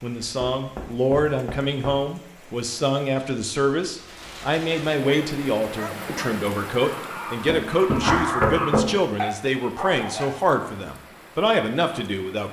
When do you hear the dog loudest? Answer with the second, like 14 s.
8 s.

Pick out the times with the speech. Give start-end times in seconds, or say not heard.
0.0-12.4.